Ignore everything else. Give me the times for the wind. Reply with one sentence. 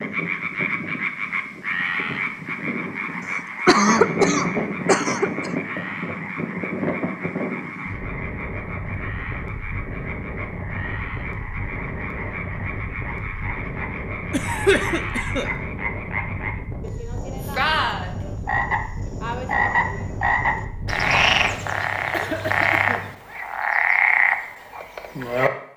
You can hear the wind from 0.0 to 21.6 s.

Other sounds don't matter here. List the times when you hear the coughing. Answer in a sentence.
You can hear the coughing from 3.3 to 5.5 s, from 14.3 to 15.5 s and from 22.1 to 23.1 s.